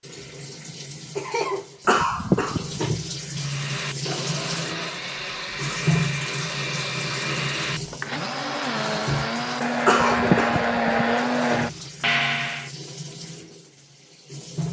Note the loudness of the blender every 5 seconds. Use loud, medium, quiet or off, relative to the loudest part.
medium, medium, loud.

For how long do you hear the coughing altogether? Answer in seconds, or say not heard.
2 s.